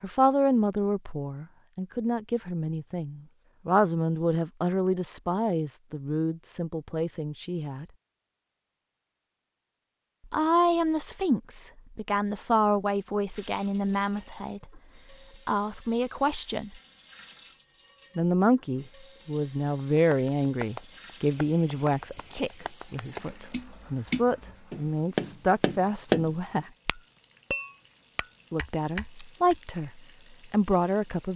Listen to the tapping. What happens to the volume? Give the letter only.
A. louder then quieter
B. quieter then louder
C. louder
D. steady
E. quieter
A.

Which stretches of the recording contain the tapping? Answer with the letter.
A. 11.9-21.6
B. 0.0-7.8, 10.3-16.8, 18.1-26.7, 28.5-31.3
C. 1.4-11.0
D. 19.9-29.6
D.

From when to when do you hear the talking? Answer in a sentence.
The talking can be heard from 0.0 to 7.8 s, from 10.3 to 16.8 s, from 18.1 to 26.7 s and from 28.5 to 31.3 s.